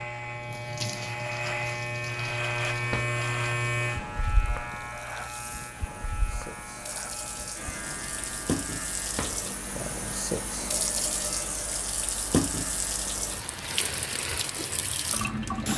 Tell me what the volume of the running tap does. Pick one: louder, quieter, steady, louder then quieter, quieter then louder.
quieter then louder.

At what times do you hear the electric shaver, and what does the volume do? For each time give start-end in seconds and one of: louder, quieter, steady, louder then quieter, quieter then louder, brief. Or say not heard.
0.0-15.7 quieter.